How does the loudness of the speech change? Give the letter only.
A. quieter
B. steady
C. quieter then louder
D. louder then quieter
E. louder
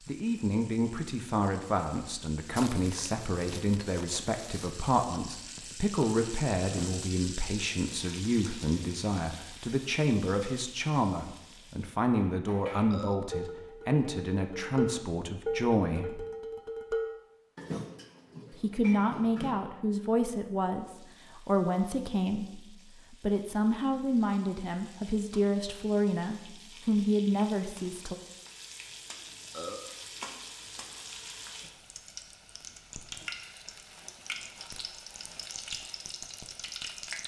B.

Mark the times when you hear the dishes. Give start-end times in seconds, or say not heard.
12.1-19.6.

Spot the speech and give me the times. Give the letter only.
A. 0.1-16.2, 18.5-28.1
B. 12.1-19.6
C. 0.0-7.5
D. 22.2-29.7
A.